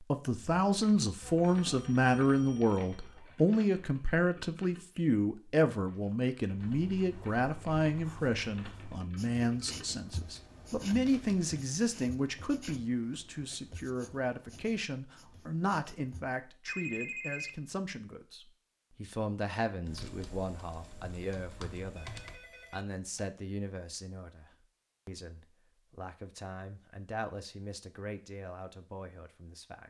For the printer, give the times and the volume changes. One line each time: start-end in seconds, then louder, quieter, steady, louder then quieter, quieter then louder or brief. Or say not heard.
not heard.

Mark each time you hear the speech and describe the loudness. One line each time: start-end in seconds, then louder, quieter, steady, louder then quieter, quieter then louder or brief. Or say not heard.
0.0-29.8 quieter.